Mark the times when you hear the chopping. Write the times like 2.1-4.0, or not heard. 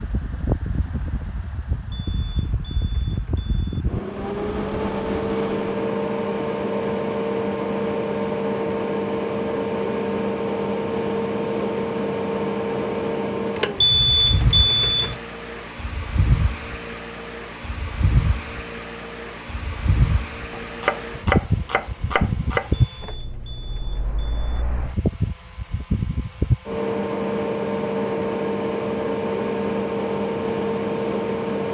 20.6-22.9.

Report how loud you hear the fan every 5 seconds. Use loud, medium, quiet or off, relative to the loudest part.
medium, loud, loud, medium, loud, loud, loud.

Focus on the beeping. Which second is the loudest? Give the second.
14 s.